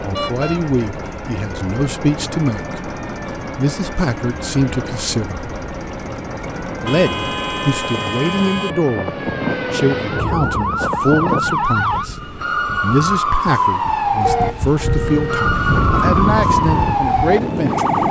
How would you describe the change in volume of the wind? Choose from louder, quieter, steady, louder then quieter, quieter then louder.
louder.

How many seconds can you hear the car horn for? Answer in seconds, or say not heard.
4 s.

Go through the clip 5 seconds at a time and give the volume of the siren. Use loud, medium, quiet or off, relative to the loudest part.
quiet, medium, loud, loud.